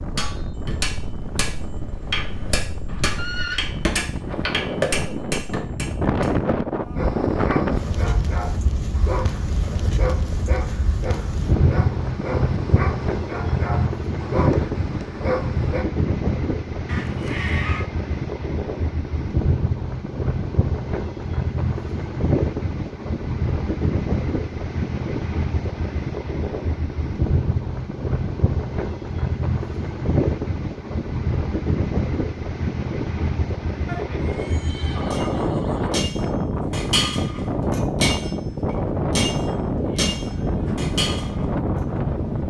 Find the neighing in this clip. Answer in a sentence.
The neighing can be heard from 2.9 to 3.6 s, from 16.9 to 17.9 s and from 33.9 to 35.9 s.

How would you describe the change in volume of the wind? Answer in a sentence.
The loudness of the wind stays about the same.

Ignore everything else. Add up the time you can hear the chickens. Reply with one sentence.
You can't hear the chickens here.